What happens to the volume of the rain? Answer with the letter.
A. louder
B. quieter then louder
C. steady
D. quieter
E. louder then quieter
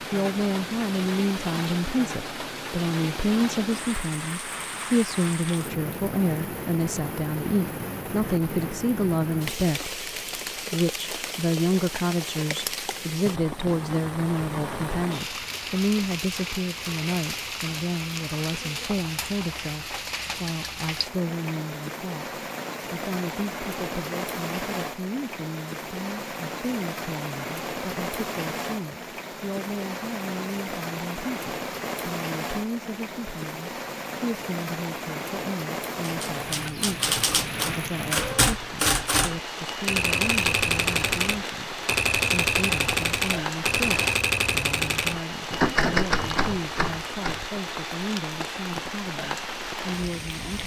C.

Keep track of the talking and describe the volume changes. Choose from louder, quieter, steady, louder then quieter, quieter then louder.
quieter.